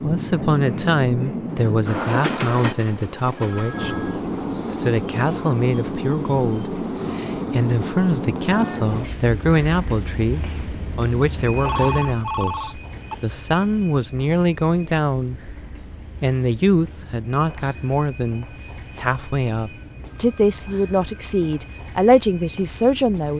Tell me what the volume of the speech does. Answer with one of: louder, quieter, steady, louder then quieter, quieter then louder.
steady.